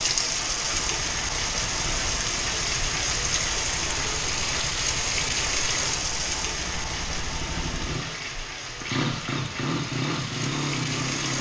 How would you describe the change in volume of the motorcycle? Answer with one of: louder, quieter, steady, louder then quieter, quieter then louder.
louder.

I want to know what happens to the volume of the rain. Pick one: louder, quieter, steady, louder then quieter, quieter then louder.
quieter.